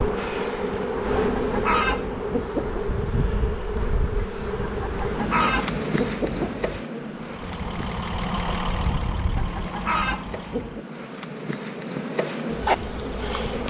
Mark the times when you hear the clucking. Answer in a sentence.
You can hear the clucking from 0.9 to 2.9 s, from 4.6 to 6.7 s and from 9.2 to 10.8 s.